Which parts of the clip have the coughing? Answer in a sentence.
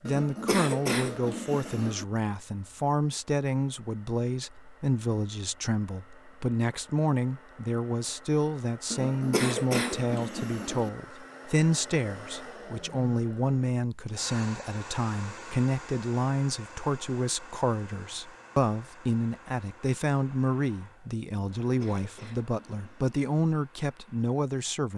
The coughing can be heard from 0.1 to 2.0 s, from 8.9 to 10.9 s and from 21.6 to 23.2 s.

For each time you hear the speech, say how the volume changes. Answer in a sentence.
You can hear the speech from 0.0 to 24.9 s, at a steady volume.